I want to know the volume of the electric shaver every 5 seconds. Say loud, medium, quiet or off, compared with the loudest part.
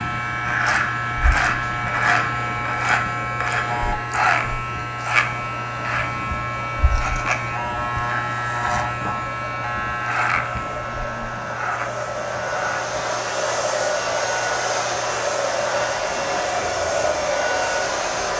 loud, loud, medium, quiet.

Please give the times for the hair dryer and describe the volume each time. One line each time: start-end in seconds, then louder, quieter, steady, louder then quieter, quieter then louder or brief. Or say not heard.
0.0-18.3 louder.